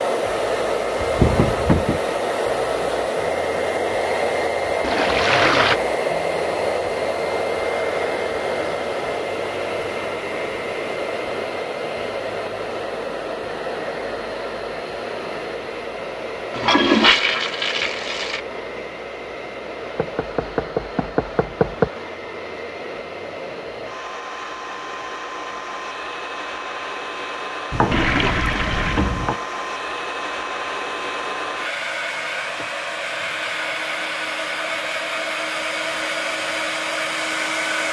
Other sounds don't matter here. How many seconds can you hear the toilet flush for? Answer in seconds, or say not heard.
4 s.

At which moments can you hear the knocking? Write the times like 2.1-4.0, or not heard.
1.0-2.0, 19.9-21.9, 27.7-29.4.